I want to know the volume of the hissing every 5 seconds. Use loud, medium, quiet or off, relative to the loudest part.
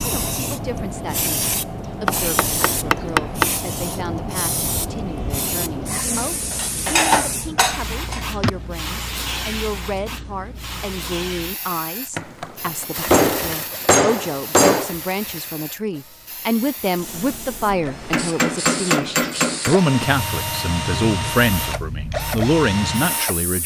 loud, loud, medium, medium, medium.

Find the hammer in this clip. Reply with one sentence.
You can hear the hammer from 2.0 to 3.5 s, from 6.5 to 8.5 s, from 12.2 to 14.9 s and from 18.1 to 19.8 s.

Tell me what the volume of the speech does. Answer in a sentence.
The loudness of the speech goes up.